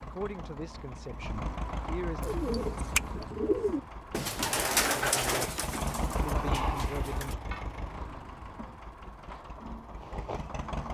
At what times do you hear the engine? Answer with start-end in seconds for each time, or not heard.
0.0-10.8.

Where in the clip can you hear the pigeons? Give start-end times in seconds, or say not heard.
2.2-7.3.